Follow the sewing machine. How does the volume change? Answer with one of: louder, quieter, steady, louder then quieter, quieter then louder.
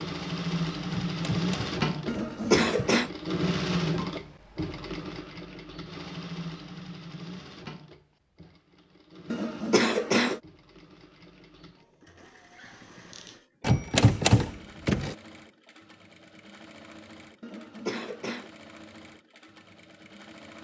quieter.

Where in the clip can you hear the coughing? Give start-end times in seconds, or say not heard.
2.0-3.1, 9.3-10.4, 17.4-18.5.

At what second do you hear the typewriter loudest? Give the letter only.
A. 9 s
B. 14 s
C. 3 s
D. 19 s
B.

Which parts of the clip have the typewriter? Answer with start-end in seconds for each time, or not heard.
0.9-2.9, 13.6-15.2.